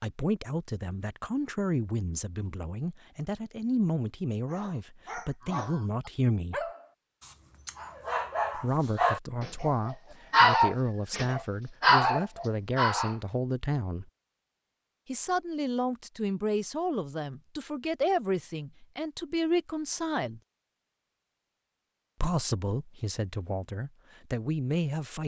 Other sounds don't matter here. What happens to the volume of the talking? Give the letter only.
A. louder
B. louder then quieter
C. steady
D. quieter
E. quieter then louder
C.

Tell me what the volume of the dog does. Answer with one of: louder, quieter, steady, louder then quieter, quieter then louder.
louder.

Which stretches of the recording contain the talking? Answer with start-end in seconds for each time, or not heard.
0.0-6.7, 8.6-14.1, 15.1-20.4, 22.2-25.2.